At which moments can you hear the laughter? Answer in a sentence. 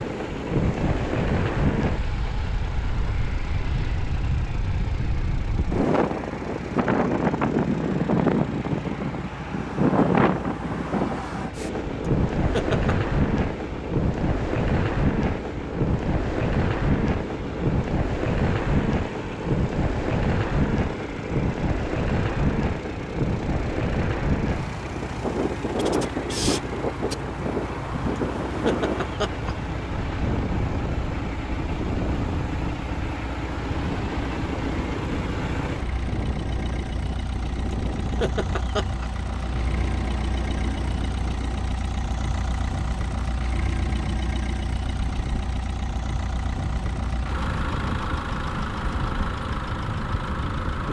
You can hear the laughter from 12.5 to 12.9 s, from 28.4 to 29.6 s and from 38.0 to 39.0 s.